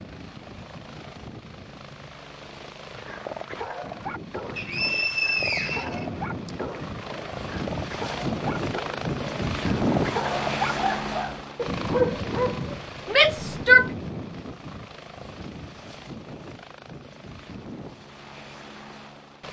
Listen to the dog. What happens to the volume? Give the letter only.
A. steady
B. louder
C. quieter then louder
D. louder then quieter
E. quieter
B.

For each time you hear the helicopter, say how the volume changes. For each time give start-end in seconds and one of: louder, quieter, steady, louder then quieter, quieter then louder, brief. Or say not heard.
0.0-19.4 louder then quieter.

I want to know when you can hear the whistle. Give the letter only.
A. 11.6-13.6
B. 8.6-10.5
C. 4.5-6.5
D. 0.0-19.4
C.